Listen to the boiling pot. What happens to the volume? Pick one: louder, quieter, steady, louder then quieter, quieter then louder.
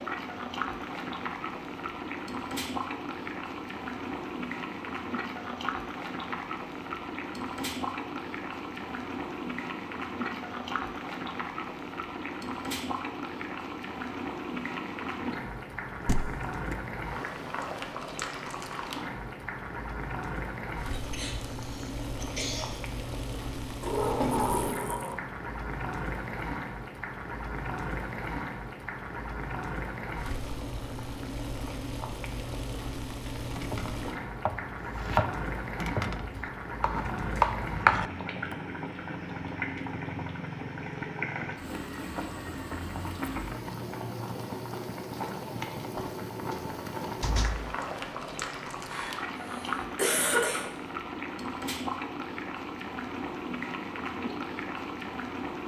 steady.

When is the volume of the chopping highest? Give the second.
38 s.